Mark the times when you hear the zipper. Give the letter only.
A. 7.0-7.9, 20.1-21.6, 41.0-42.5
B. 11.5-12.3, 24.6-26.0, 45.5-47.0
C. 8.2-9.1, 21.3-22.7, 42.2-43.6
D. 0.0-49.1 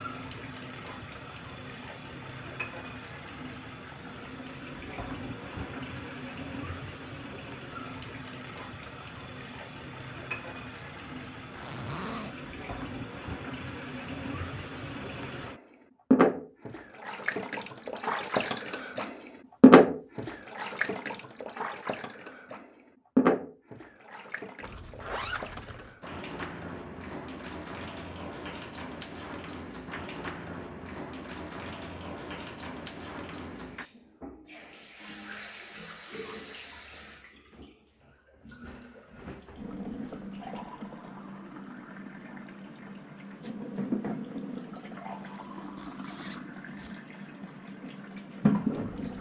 B.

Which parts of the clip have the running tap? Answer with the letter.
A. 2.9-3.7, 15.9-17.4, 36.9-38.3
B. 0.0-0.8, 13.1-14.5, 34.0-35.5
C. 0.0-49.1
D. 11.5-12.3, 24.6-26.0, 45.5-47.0
C.